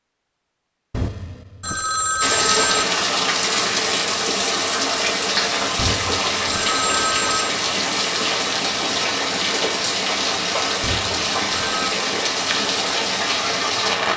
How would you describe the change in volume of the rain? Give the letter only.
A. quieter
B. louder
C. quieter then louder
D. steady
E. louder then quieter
D.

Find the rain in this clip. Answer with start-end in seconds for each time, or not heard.
2.2-14.1.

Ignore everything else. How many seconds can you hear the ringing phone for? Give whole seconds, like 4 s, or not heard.
5 s.